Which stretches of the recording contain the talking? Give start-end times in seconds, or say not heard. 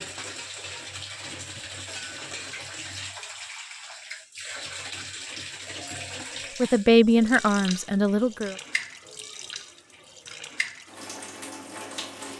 6.6-8.6.